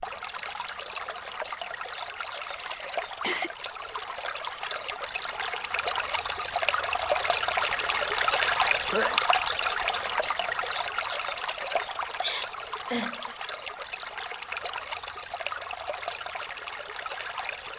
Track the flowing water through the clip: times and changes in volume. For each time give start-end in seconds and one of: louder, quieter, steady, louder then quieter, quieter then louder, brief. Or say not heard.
0.0-17.7 louder then quieter.